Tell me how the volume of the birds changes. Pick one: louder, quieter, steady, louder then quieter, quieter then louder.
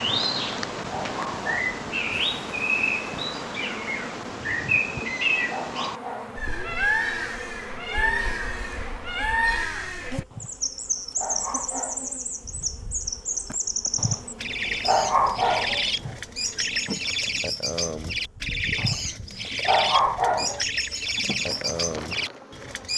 steady.